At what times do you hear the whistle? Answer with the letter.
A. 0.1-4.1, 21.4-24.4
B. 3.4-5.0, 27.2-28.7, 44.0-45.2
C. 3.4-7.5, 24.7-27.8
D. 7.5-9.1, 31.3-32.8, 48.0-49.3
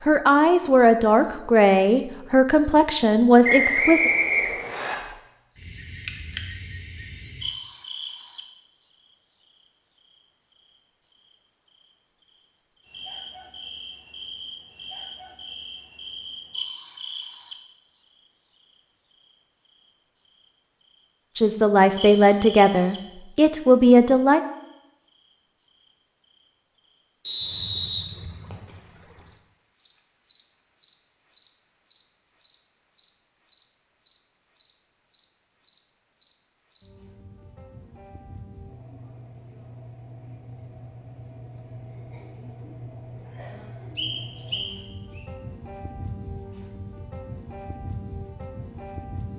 B.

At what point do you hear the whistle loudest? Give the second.
4 s.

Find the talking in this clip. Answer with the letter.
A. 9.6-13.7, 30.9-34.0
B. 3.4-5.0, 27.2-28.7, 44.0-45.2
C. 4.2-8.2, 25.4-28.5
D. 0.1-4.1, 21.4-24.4
D.